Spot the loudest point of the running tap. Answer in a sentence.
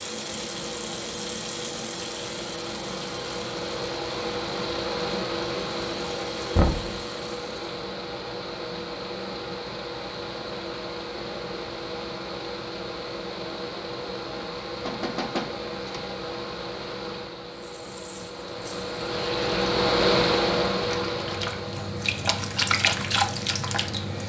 The volume of the running tap peaks at 23 seconds.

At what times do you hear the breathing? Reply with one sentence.
The breathing can't be heard in this clip.